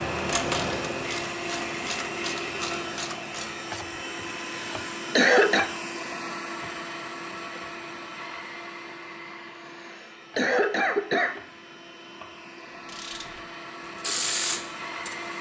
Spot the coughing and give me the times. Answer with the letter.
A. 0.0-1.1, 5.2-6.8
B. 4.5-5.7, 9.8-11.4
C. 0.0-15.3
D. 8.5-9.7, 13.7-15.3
B.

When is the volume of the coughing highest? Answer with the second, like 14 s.
5 s.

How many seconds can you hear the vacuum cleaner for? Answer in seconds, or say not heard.
15 s.